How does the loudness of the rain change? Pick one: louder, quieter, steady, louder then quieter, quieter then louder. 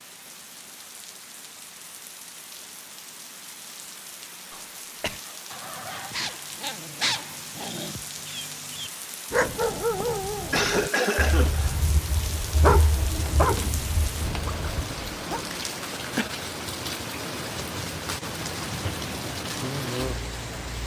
louder.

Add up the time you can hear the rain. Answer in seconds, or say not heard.
21 s.